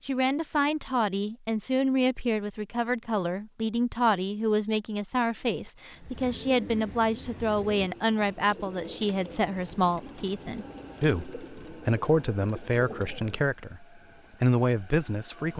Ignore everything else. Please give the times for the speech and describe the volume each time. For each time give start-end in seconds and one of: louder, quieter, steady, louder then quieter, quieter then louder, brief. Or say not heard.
0.0-15.5 steady.